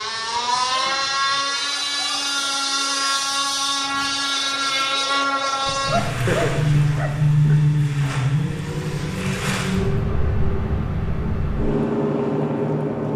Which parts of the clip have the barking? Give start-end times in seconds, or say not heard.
5.7-7.5.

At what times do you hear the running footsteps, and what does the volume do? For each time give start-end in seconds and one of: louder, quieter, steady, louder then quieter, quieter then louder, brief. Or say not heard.
not heard.